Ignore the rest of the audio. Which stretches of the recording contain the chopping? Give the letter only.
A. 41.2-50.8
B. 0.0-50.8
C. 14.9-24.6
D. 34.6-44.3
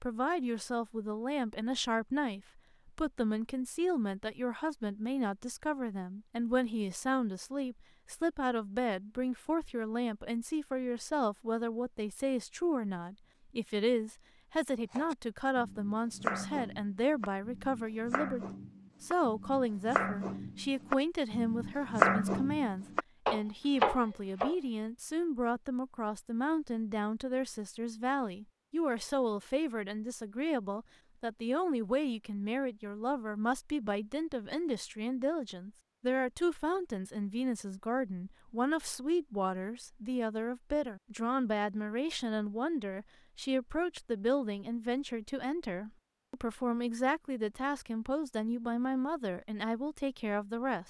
C.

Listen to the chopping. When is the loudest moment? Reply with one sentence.
The volume of the chopping peaks at 22 seconds.